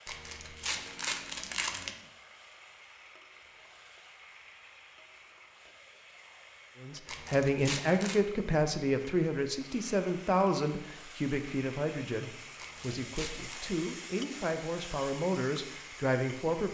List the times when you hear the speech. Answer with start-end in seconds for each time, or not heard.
6.8-16.7.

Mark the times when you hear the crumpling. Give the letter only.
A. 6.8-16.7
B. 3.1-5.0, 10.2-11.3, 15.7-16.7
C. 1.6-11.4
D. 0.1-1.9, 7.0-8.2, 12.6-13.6
D.